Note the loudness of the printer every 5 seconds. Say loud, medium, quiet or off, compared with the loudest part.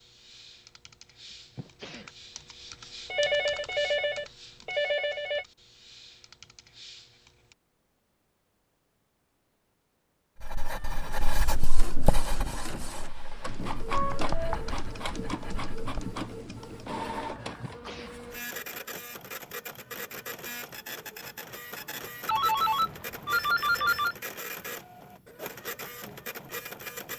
off, off, loud, loud, loud, loud.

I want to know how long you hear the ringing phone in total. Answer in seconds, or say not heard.
5 s.